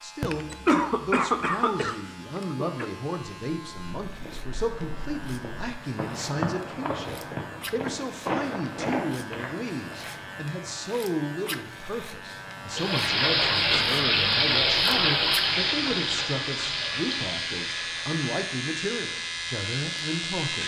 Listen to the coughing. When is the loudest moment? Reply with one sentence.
The loudest moment of the coughing is at 1 second.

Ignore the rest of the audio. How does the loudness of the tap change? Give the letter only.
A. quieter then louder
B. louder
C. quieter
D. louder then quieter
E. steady
C.